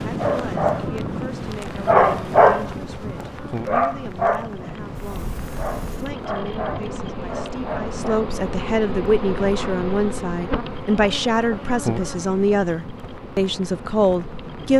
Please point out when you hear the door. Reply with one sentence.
The door can be heard from 5.0 to 6.2 s.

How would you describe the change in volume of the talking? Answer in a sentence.
The volume of the talking goes up.